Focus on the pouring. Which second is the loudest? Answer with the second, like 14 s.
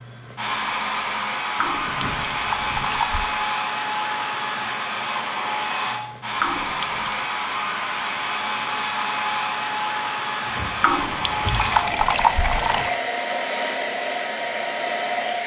12 s.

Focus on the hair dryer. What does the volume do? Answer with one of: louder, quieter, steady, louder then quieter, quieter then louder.
steady.